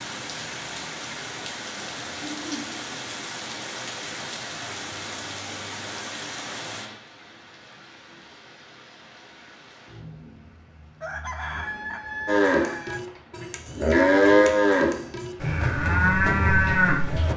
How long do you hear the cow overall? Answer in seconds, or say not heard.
5 s.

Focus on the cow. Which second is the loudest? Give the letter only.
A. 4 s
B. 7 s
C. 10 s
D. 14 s
D.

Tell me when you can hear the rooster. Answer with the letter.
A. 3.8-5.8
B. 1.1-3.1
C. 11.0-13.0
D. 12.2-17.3
C.